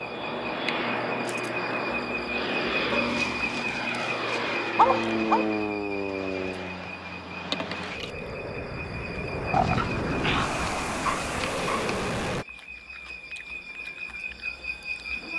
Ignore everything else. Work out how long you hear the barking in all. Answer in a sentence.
You can hear the barking for 5 seconds altogether.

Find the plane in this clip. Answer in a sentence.
You can hear the plane from 0.0 to 12.4 s.